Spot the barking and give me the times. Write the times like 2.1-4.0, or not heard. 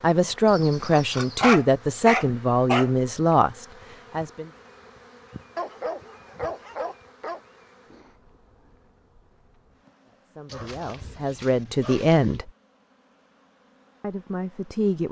0.5-2.9, 5.5-7.4, 10.4-12.4.